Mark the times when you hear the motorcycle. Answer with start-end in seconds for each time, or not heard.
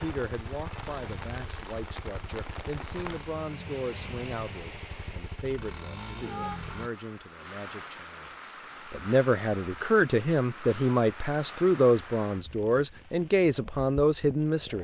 0.0-6.9.